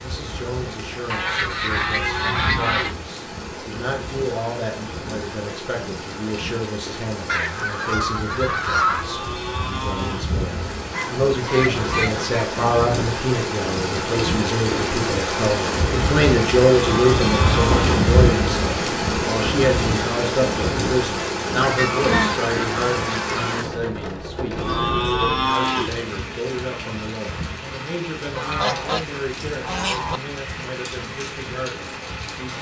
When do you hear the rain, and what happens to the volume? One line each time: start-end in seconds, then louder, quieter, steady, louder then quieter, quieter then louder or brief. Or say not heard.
0.0-32.5 louder then quieter.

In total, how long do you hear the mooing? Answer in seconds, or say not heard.
5 s.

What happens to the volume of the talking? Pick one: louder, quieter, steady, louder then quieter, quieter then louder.
louder then quieter.